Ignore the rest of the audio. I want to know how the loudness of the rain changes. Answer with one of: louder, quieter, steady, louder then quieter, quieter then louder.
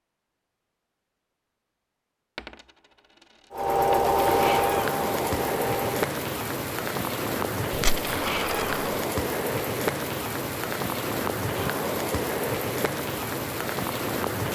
steady.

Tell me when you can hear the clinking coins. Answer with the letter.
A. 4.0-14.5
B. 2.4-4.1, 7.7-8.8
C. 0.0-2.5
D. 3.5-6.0
B.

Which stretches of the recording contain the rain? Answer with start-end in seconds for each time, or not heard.
4.0-14.5.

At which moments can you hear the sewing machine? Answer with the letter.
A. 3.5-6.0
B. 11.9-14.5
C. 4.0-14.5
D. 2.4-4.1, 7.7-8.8
A.